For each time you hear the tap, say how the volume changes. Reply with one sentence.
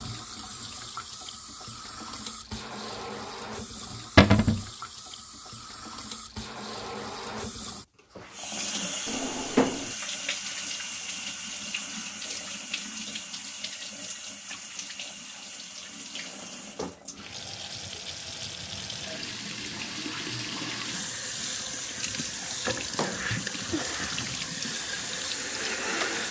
You can hear the tap from 0.0 to 26.2 s, getting louder.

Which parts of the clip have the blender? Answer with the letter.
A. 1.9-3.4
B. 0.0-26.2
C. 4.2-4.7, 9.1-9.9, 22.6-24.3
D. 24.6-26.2
D.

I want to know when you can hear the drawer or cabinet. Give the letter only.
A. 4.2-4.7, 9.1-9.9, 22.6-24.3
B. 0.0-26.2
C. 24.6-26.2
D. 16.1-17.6
A.